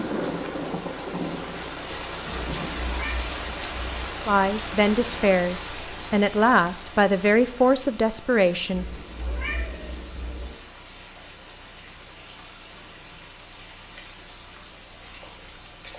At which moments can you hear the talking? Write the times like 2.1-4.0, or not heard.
4.2-8.9.